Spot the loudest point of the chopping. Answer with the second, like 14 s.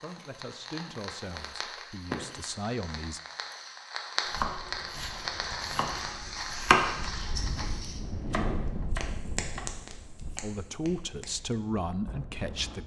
7 s.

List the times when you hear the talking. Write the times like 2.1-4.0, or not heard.
0.0-3.2, 10.4-12.8.